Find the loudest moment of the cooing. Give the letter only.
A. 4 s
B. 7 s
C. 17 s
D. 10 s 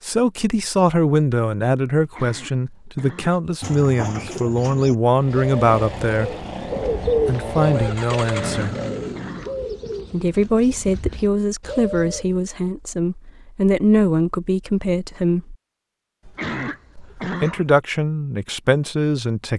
B.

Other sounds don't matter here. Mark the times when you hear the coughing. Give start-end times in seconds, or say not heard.
2.0-3.4, 8.2-9.7, 16.2-17.7.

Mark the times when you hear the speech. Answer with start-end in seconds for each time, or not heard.
0.0-6.5, 7.2-8.8, 10.1-15.6, 16.9-19.5.